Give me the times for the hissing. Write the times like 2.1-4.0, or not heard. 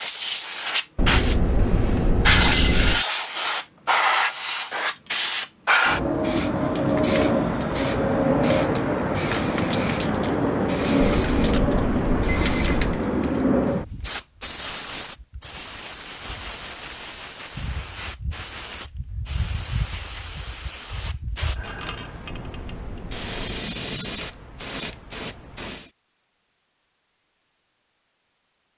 0.0-25.9.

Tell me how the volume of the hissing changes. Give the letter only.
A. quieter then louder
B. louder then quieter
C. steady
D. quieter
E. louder
D.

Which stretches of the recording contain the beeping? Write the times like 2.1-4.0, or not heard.
0.9-3.0, 11.0-13.1, 22.2-23.6.